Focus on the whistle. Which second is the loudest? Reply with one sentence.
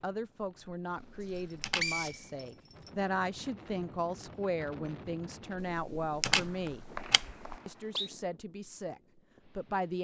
The volume of the whistle peaks at 2 seconds.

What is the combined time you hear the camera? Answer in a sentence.
The camera can be heard for 3 seconds in total.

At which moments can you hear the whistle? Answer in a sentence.
The whistle can be heard from 1.2 to 2.9 s and from 6.2 to 8.1 s.